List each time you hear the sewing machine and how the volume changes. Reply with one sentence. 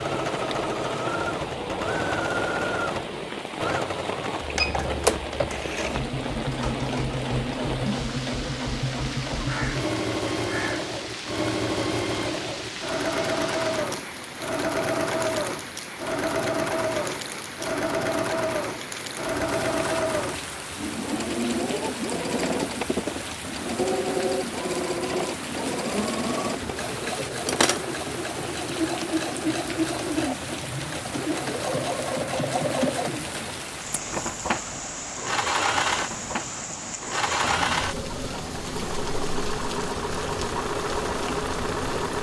The sewing machine can be heard from 0.0 to 42.1 s, at a steady volume.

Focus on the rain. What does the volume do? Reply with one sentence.
The volume of the rain stays about the same.